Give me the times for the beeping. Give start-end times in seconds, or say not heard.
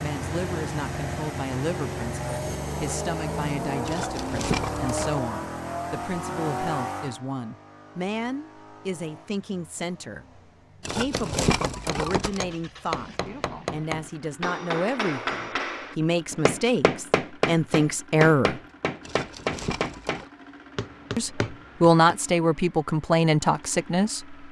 not heard.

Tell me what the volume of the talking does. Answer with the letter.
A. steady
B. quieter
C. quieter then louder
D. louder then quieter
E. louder
E.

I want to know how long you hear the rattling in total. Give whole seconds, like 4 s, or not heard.
4 s.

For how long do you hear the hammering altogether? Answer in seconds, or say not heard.
11 s.